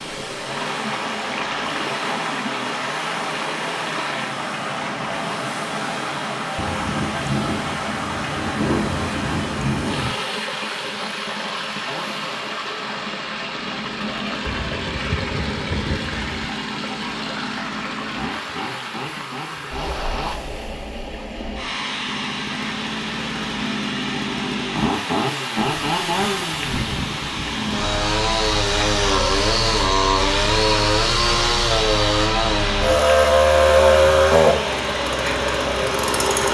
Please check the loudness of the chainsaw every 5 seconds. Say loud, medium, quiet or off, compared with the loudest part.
quiet, quiet, quiet, quiet, quiet, medium, loud, medium.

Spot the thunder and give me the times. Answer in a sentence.
The thunder can be heard from 6.5 to 10.2 s, from 14.4 to 16.4 s and from 25.6 to 28.1 s.